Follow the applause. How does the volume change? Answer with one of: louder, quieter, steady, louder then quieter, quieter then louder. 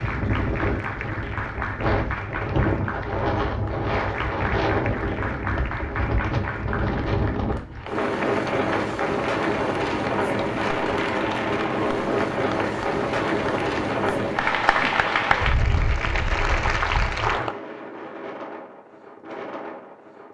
louder.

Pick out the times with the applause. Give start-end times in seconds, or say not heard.
0.0-17.6.